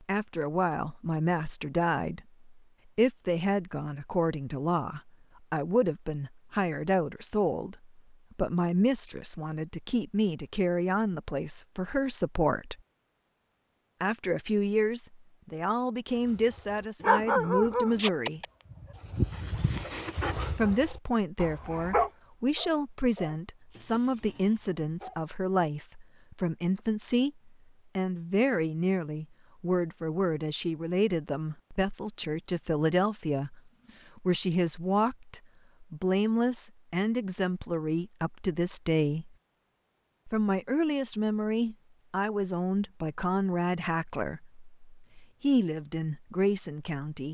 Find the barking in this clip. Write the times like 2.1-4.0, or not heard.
16.3-25.2.